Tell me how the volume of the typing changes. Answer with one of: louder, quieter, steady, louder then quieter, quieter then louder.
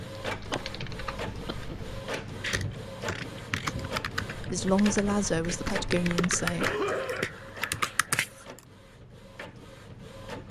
louder.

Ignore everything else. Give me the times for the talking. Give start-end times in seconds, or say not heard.
4.3-6.7.